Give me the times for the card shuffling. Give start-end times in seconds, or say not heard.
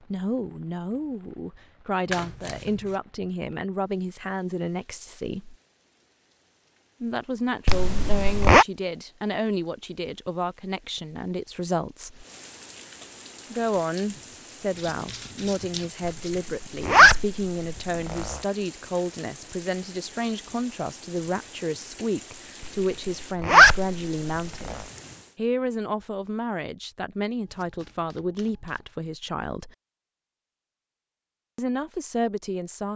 2.0-3.0, 14.8-16.4, 27.4-28.9.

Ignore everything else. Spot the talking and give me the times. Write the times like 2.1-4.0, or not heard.
0.0-5.5, 7.0-12.2, 13.5-24.8, 25.4-29.7, 31.6-32.9.